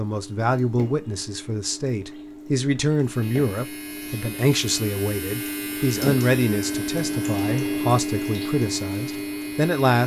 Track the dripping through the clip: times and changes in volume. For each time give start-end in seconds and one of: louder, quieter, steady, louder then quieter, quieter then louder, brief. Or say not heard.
0.0-9.8 louder.